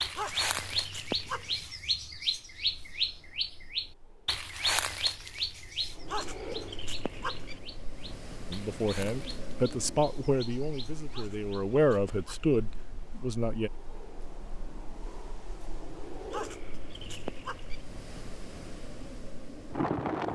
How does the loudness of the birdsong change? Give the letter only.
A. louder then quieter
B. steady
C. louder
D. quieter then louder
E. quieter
E.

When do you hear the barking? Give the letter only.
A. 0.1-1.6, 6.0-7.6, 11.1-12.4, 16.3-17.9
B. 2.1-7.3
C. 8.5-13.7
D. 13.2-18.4
A.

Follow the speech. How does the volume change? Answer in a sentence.
The volume of the speech goes down, then up.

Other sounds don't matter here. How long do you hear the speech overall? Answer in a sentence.
The speech can be heard for 5 seconds in total.